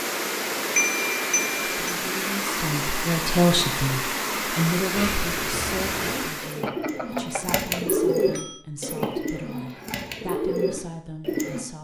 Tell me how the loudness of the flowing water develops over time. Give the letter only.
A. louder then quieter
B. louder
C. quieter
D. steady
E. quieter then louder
D.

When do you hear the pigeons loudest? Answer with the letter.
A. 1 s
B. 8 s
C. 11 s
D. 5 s
B.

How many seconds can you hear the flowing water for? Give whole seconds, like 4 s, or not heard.
7 s.